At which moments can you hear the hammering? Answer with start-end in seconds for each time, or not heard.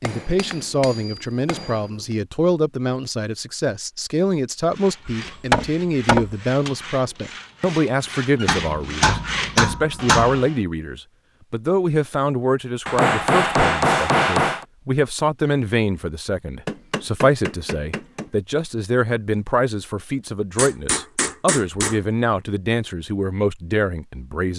0.0-1.8, 5.0-6.3, 8.4-10.4, 12.8-14.7, 16.6-18.2, 20.6-22.0.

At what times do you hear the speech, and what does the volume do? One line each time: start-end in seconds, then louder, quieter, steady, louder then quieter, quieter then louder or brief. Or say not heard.
0.0-24.5 steady.